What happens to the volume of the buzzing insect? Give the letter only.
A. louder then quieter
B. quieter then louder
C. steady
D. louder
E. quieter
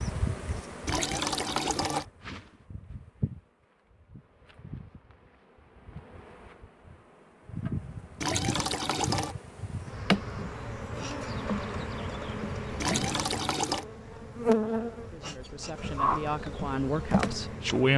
B.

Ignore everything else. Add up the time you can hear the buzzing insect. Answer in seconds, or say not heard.
18 s.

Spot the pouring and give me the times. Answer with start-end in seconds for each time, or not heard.
0.8-2.0, 8.2-9.3, 12.8-13.8.